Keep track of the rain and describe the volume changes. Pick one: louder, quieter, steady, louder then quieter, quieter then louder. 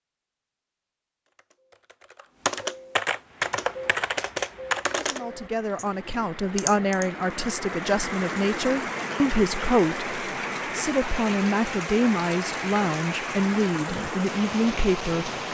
louder.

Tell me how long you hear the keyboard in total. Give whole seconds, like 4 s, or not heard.
6 s.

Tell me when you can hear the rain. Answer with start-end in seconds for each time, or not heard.
3.1-15.5.